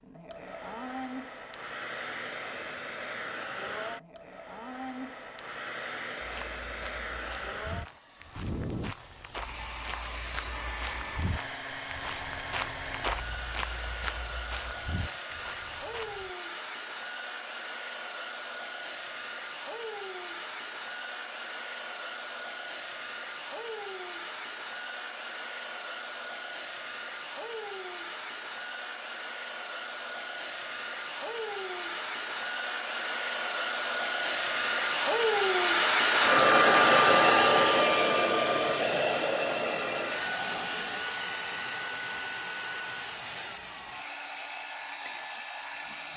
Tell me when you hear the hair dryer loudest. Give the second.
37 s.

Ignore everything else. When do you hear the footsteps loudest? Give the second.
13 s.